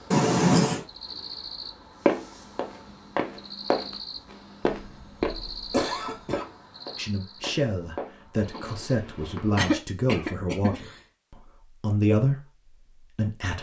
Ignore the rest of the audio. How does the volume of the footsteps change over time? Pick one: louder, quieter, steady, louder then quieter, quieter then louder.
quieter.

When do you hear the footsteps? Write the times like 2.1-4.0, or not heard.
2.0-9.7.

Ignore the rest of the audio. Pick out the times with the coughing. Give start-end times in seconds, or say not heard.
0.1-0.8, 4.8-6.5, 9.6-10.9.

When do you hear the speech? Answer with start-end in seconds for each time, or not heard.
7.0-13.5.